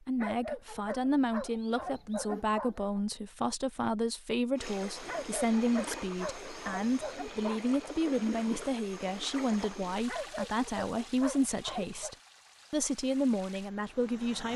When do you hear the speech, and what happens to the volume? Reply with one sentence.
You can hear the speech from 0.1 to 14.5 s, at a steady volume.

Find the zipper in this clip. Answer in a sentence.
The zipper can't be heard in this clip.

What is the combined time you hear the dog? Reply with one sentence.
You can hear the dog for 8 seconds altogether.